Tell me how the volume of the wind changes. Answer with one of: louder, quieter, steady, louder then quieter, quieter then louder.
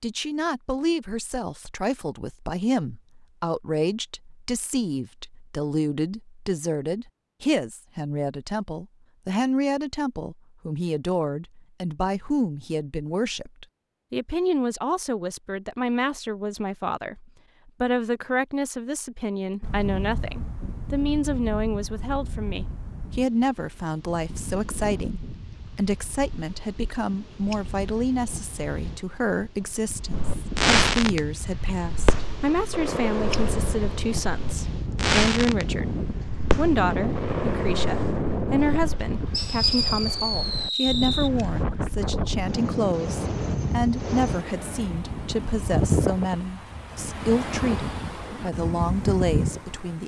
louder.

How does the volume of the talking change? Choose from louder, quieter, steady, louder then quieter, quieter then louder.
steady.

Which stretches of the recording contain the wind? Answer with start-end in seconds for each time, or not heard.
19.6-50.0.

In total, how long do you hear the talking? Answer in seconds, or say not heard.
50 s.